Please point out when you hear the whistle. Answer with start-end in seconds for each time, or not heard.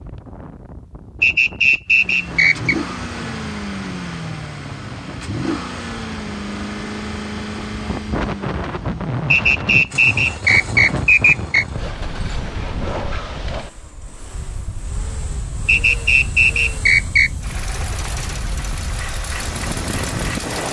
1.2-2.8, 9.3-11.7, 15.7-17.3.